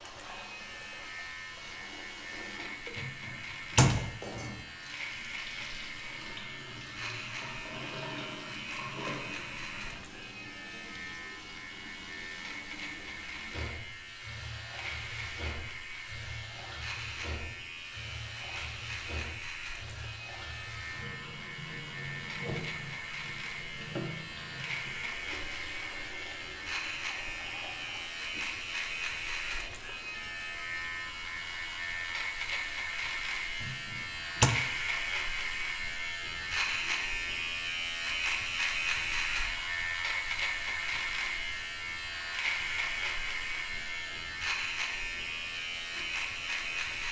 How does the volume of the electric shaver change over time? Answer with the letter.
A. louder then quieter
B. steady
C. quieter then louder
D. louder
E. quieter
D.